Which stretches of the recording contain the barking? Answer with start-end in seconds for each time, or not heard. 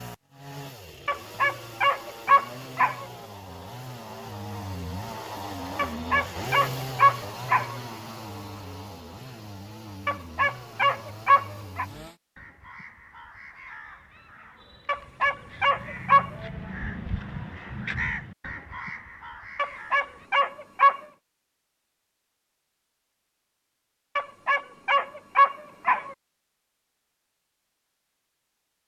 1.1-3.0, 5.8-7.8, 10.1-11.8, 14.8-16.3, 19.6-21.0, 24.1-26.1.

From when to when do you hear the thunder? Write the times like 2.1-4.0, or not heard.
not heard.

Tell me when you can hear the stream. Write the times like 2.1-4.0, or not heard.
not heard.